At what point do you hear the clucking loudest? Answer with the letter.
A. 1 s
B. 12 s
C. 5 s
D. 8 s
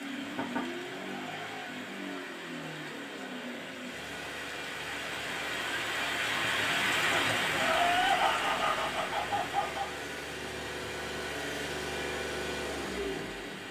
D.